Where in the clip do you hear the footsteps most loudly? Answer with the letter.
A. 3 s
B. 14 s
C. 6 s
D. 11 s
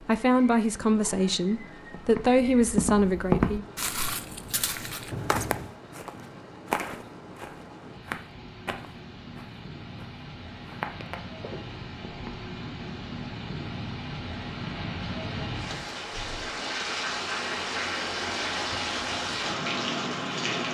A.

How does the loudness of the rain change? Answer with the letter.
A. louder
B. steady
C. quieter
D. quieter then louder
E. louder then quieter
A.